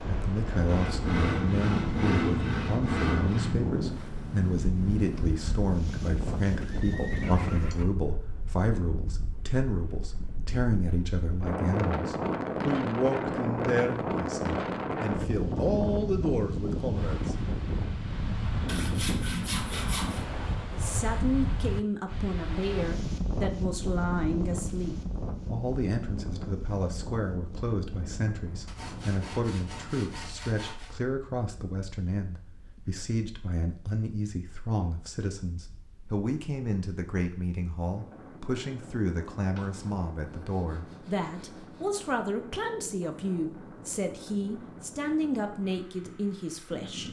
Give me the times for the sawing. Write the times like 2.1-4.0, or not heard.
0.7-3.5, 18.6-20.2, 28.6-30.9, 39.5-41.9.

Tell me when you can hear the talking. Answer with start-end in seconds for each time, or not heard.
0.1-17.4, 20.7-47.0.